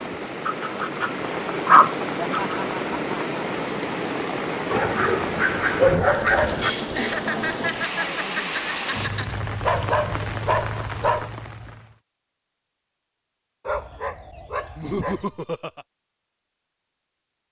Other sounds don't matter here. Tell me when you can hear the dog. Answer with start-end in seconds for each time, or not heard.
0.5-2.5, 4.7-6.7, 9.6-11.3, 13.7-15.2.